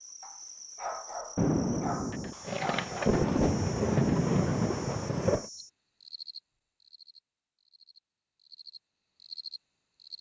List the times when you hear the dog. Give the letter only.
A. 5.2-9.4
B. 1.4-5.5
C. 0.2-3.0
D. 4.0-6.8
C.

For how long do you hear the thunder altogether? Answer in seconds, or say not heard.
4 s.